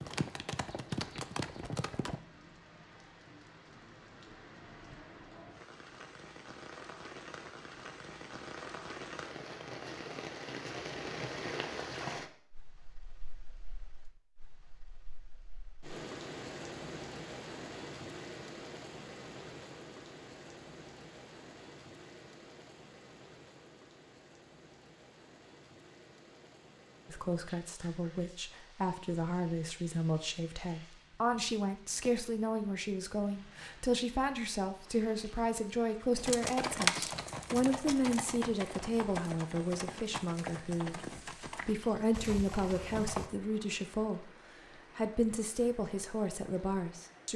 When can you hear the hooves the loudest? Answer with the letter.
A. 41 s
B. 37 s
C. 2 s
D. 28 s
B.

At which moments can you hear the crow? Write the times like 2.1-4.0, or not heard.
not heard.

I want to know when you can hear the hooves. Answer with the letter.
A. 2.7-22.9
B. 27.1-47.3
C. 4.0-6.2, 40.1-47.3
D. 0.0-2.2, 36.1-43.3
D.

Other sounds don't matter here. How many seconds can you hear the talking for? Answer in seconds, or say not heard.
20 s.